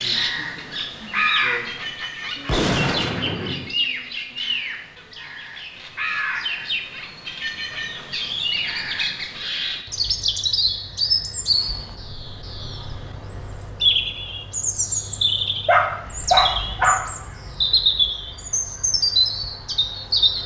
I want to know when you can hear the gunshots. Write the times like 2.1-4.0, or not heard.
2.5-3.8.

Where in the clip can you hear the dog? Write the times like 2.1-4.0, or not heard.
15.7-17.0.